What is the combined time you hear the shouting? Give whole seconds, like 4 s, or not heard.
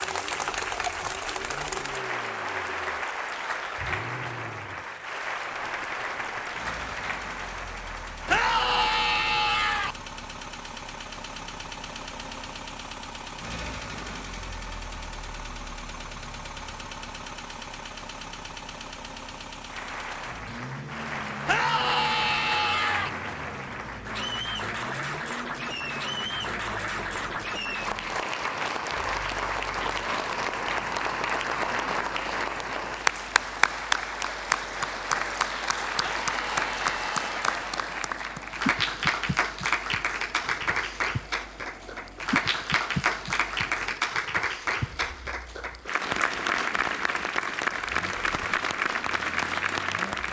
5 s.